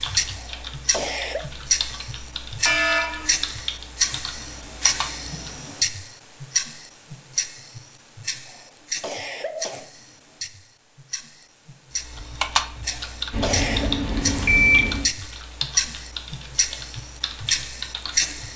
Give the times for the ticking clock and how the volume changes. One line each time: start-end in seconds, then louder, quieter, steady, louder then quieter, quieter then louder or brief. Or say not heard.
0.0-18.5 quieter then louder.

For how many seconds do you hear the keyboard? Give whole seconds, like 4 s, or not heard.
12 s.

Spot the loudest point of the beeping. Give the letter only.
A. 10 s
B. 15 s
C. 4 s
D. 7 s
B.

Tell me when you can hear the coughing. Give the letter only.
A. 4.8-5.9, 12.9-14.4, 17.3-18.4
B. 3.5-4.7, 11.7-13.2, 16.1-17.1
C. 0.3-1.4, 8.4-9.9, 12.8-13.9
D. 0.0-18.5
C.